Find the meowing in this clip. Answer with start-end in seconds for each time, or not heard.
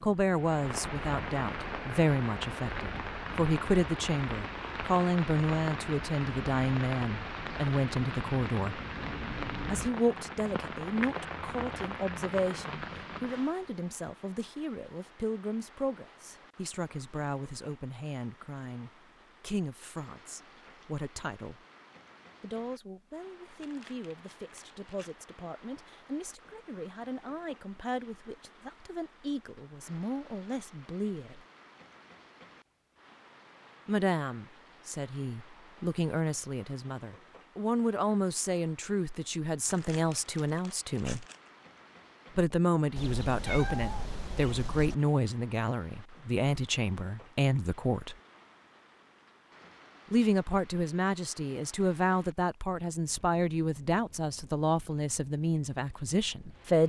43.0-45.0.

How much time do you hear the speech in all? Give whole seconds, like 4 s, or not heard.
50 s.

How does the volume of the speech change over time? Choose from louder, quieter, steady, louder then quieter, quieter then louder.
quieter then louder.